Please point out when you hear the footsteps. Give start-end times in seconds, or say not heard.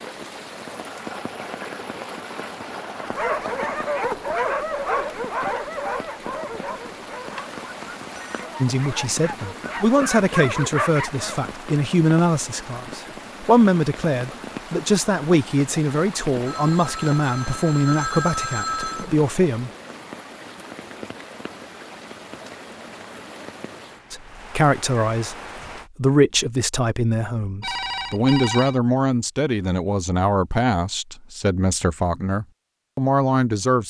not heard.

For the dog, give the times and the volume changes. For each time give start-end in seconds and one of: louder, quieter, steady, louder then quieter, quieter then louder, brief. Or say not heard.
3.0-11.5 quieter then louder.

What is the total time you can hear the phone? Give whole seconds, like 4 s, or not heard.
5 s.